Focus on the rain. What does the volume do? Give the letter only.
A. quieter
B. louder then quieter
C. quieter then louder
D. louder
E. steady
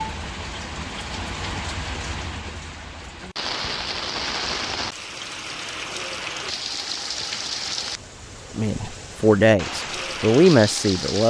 E.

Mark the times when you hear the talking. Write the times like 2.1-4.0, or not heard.
8.6-11.2.